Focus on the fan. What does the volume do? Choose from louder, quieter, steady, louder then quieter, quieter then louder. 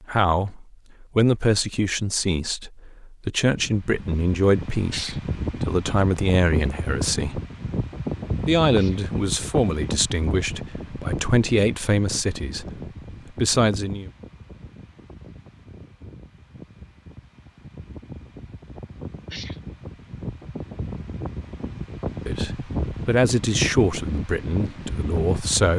quieter then louder.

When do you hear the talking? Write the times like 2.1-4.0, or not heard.
0.0-7.4, 8.4-12.7, 13.3-14.1, 22.2-25.7.